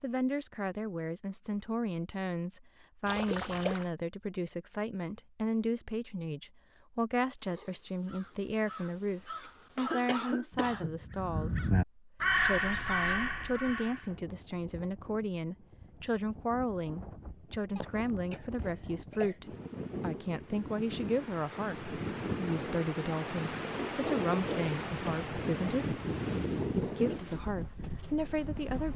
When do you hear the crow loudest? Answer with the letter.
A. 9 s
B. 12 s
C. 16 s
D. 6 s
B.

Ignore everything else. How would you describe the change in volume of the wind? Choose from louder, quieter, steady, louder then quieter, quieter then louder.
louder.